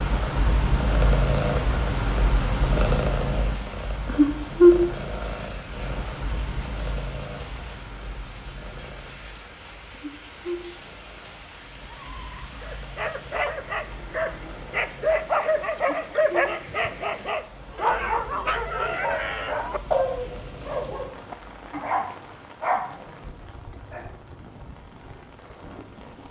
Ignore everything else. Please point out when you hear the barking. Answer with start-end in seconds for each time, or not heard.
12.6-24.2.